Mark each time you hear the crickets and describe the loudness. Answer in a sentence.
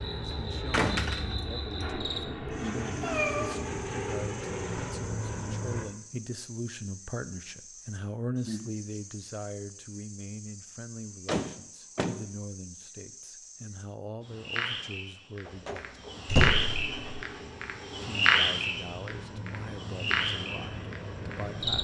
You can hear the crickets from 0.0 to 21.7 s, getting quieter then louder.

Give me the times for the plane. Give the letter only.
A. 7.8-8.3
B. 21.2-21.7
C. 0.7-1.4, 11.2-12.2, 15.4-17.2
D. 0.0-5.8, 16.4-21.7
D.